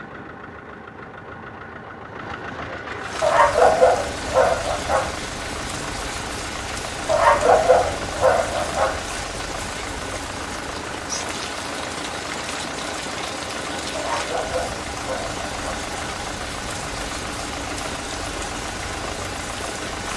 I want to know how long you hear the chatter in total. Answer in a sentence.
The chatter can't be heard in this clip.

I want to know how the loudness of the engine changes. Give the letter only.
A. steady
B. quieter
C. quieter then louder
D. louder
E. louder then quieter
A.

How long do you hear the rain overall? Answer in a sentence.
The rain can be heard for 17 seconds in total.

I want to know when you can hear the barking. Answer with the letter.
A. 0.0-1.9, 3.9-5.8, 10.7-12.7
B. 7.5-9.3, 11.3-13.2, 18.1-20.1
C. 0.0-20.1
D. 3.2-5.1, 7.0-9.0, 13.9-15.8
D.